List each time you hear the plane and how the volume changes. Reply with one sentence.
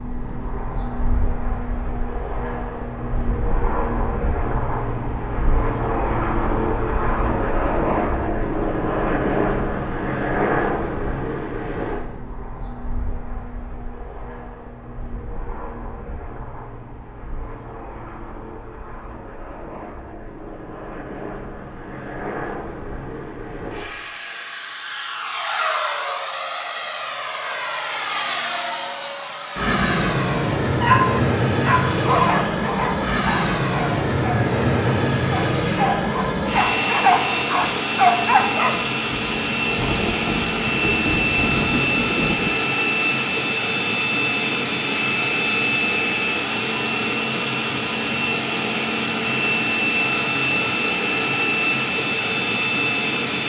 The plane can be heard from 0.0 to 53.4 s, getting quieter then louder.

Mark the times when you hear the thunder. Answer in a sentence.
The thunder can be heard from 39.2 to 42.5 s.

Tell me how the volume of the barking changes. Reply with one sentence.
The volume of the barking goes down, then up.